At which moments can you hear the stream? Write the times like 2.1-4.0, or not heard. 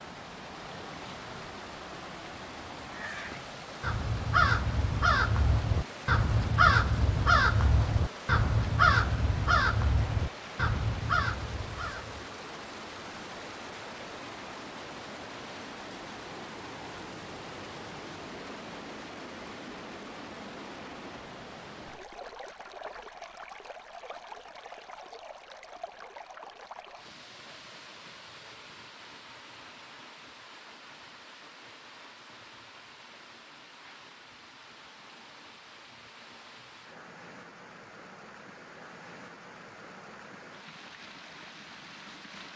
0.0-42.5.